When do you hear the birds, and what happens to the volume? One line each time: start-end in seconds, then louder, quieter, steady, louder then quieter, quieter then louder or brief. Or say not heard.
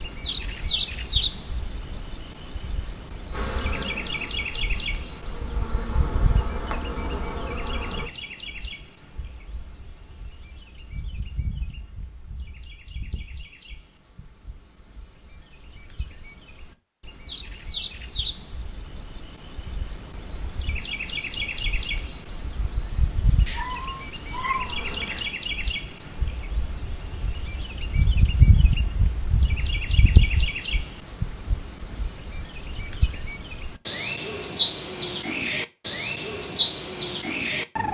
0.0-37.9 quieter then louder.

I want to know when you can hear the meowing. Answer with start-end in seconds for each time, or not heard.
23.4-25.3.